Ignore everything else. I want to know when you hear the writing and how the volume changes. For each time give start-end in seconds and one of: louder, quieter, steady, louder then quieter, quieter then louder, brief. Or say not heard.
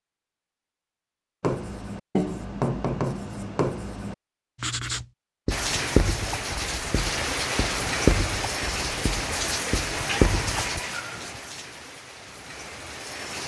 1.4-10.8 steady.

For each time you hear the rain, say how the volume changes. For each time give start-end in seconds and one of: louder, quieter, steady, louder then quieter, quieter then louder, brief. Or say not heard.
5.5-13.4 quieter.